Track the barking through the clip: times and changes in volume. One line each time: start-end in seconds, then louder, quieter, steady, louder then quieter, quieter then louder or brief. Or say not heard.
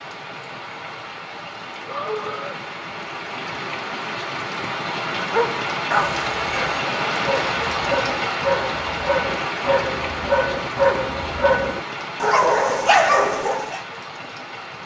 5.2-13.8 louder.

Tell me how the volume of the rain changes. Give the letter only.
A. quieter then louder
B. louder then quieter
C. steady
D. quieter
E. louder
B.